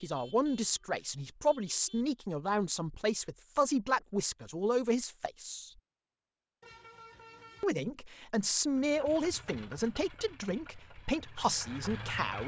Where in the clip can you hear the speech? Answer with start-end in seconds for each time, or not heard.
0.0-5.7, 7.6-12.4.